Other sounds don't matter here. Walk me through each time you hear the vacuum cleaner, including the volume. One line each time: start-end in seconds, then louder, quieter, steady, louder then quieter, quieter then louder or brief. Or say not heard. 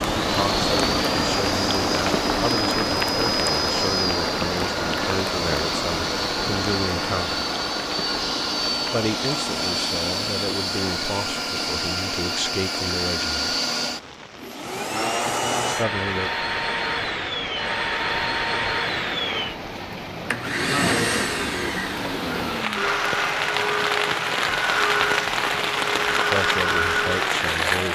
0.0-27.9 steady.